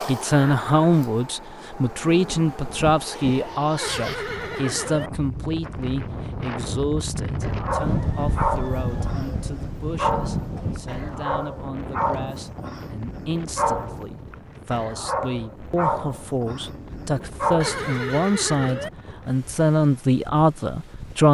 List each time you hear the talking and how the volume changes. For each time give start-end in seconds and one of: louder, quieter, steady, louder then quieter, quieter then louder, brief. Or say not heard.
0.1-21.2 quieter then louder.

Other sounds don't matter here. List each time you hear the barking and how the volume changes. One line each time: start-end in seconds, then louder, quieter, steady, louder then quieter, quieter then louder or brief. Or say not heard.
7.4-17.9 steady.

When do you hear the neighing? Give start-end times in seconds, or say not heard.
3.8-5.1, 17.6-18.9.